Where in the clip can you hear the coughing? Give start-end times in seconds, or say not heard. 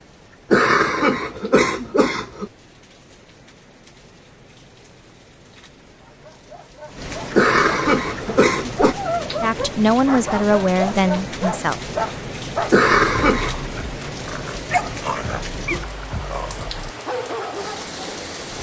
0.5-2.5, 7.3-8.9, 12.7-13.6.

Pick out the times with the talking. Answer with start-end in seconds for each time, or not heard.
9.4-11.8.